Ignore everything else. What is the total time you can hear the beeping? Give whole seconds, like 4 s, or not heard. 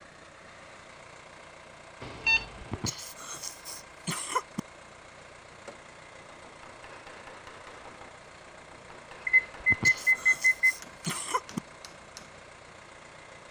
2 s.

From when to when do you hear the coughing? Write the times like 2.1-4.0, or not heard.
2.6-4.6, 9.6-11.6.